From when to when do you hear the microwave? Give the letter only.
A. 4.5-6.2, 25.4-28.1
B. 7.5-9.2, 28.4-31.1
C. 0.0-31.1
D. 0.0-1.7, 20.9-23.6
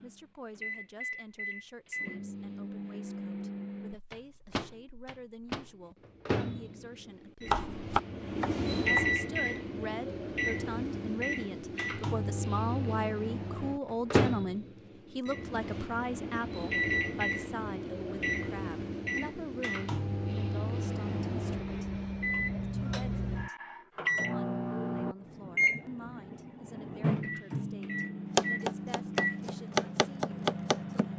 C.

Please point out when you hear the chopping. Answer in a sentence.
You can hear the chopping from 7.5 to 9.2 s and from 28.4 to 31.1 s.